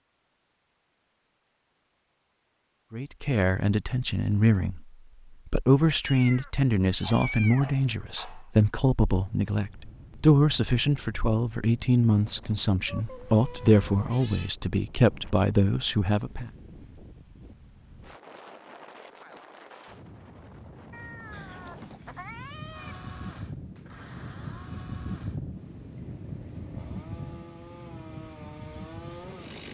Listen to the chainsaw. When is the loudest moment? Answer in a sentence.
The loudest moment of the chainsaw is at 29 seconds.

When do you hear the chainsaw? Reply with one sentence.
You can hear the chainsaw from 22.7 to 29.7 s.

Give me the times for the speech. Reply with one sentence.
The speech can be heard from 2.9 to 4.8 s and from 5.5 to 16.5 s.